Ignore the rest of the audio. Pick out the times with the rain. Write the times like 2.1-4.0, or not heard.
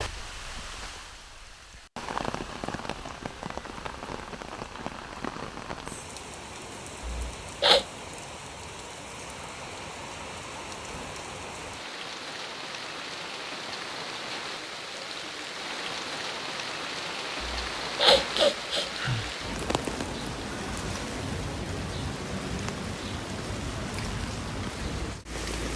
0.0-25.7.